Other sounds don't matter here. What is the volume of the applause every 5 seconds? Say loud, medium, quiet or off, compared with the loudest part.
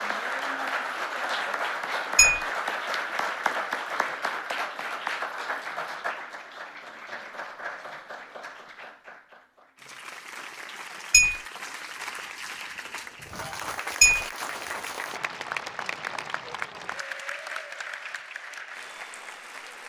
loud, medium, medium, medium.